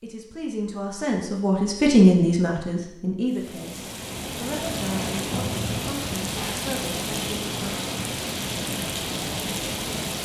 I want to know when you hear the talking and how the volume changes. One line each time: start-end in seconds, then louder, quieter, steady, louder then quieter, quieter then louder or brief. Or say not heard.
0.0-7.7 louder then quieter.